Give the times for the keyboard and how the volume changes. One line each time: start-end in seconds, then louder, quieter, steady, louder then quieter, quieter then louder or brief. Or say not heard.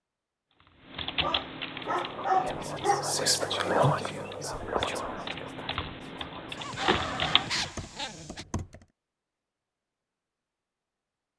0.5-8.8 quieter then louder.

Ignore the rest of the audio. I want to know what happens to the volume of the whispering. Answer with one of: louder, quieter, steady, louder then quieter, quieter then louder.
louder then quieter.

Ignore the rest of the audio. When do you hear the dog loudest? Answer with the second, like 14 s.
2 s.